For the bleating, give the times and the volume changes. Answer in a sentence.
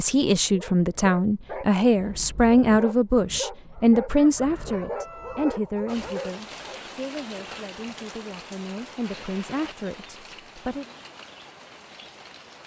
The bleating can't be heard in this clip.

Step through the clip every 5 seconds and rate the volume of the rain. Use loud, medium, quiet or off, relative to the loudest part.
off, loud, medium.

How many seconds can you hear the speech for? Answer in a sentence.
The speech can be heard for 11 seconds in total.